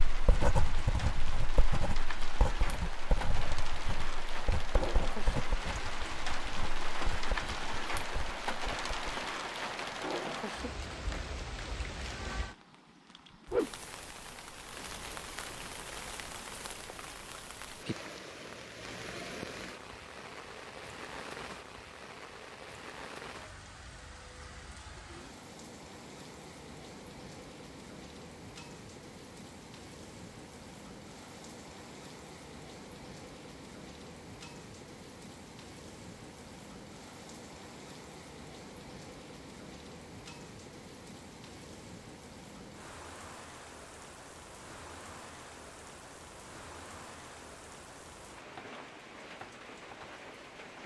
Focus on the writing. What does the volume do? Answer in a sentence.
The loudness of the writing goes down.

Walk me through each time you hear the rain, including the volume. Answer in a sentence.
You can hear the rain from 0.0 to 50.8 s, getting quieter.